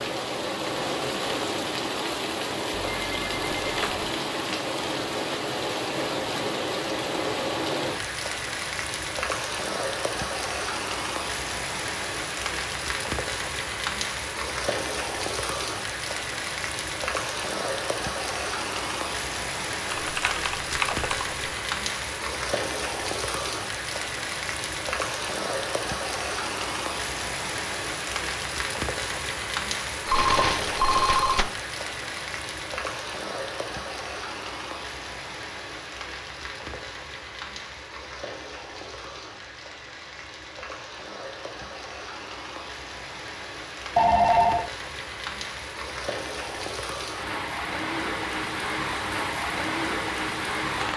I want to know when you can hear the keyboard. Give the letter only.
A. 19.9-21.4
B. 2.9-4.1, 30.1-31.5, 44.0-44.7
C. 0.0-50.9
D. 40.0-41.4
A.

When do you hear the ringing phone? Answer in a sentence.
You can hear the ringing phone from 2.9 to 4.1 s, from 30.1 to 31.5 s and from 44.0 to 44.7 s.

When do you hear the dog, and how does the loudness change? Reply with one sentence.
The dog can't be heard in this clip.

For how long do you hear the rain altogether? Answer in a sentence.
You can hear the rain for 51 seconds altogether.